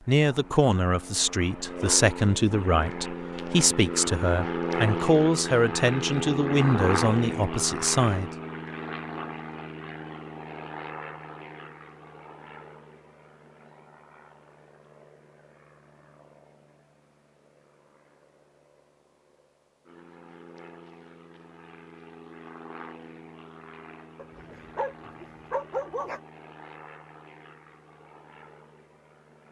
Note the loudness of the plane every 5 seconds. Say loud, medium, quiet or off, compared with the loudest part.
loud, loud, quiet, quiet, quiet, quiet.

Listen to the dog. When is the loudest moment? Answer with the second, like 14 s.
26 s.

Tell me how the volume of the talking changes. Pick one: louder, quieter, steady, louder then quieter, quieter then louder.
steady.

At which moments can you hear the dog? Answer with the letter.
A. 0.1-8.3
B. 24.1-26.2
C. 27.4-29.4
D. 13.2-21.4
B.